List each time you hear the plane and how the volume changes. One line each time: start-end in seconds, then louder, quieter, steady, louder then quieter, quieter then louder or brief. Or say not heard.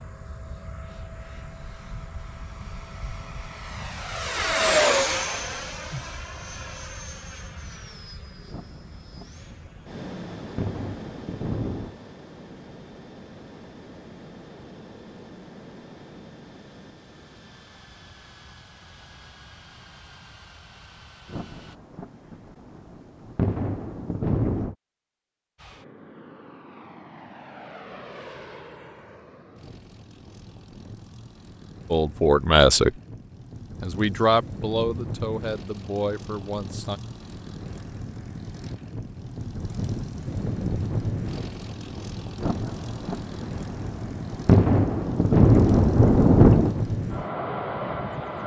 0.0-21.8 louder then quieter
25.6-48.4 louder.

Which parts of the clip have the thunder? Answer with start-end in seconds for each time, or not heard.
8.4-11.9, 21.2-24.8, 42.4-46.8.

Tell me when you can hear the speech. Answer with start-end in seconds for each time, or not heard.
31.9-32.9, 33.8-37.0.